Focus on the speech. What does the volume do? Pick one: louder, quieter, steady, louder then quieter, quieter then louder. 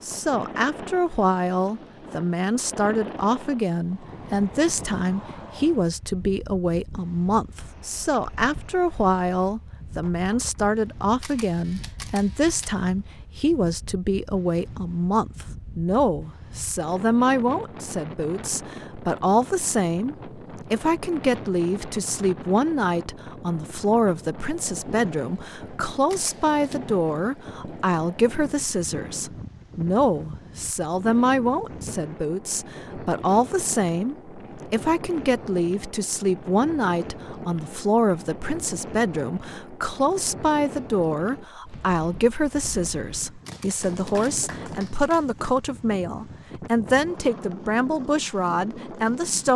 steady.